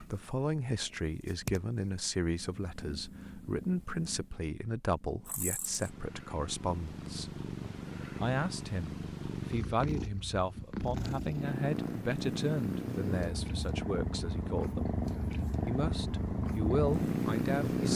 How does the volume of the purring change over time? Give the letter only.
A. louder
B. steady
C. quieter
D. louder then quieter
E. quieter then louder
A.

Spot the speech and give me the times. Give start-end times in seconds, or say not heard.
0.0-7.4, 8.2-14.9, 15.7-17.9.